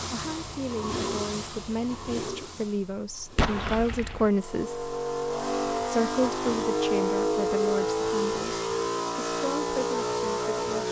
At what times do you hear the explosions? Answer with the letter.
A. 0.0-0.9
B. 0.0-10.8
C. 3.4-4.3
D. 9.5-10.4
C.